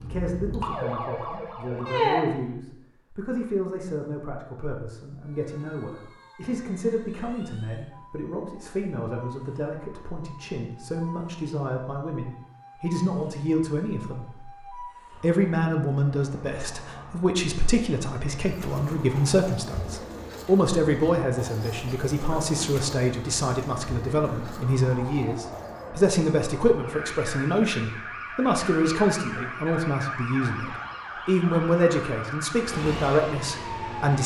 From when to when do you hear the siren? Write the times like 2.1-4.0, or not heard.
0.0-2.2, 5.2-34.2.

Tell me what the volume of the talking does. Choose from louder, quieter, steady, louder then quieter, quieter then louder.
louder.